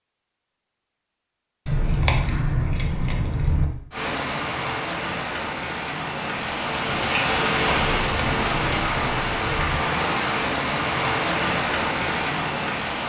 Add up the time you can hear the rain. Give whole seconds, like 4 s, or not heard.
9 s.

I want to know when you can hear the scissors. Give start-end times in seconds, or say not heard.
1.6-3.6, 8.0-9.8.